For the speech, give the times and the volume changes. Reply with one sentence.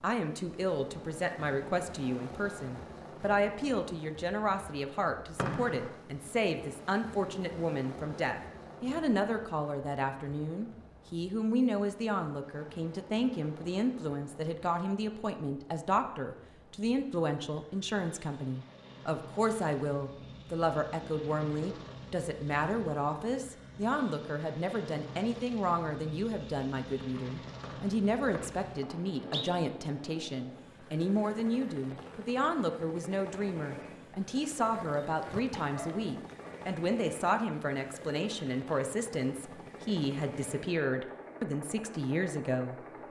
You can hear the speech from 0.0 to 42.8 s, at a steady volume.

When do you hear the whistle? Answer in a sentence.
The whistle can be heard from 5.3 to 6.0 s and from 27.6 to 29.4 s.